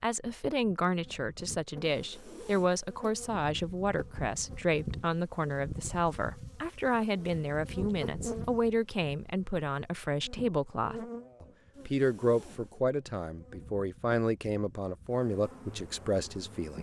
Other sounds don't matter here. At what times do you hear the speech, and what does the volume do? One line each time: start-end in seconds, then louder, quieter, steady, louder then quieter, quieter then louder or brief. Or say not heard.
0.0-16.7 steady.